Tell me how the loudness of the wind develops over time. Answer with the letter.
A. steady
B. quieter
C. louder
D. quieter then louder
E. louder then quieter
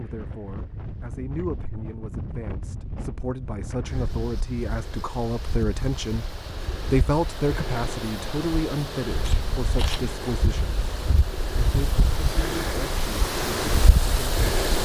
C.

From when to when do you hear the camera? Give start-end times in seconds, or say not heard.
9.2-10.2.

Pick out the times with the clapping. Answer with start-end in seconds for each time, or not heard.
not heard.